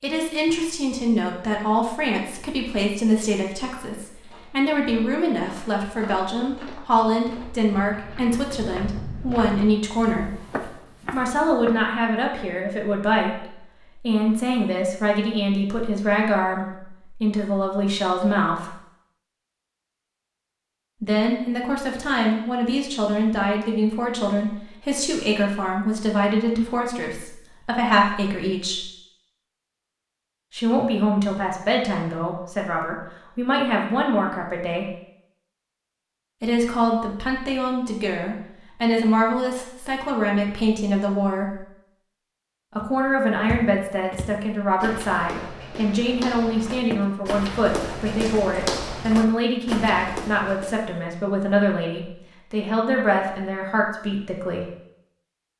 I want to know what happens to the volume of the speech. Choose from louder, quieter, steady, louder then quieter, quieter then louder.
steady.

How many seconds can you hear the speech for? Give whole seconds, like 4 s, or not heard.
47 s.